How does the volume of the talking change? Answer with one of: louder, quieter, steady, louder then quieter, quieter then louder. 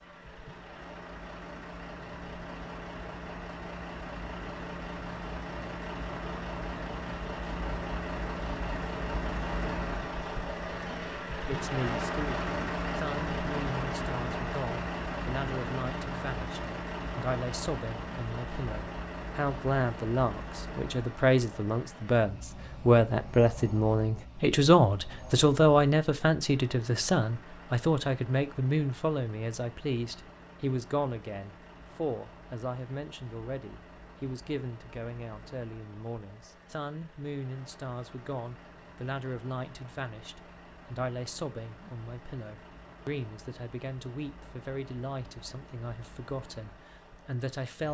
louder then quieter.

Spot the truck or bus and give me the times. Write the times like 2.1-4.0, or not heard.
0.0-47.8.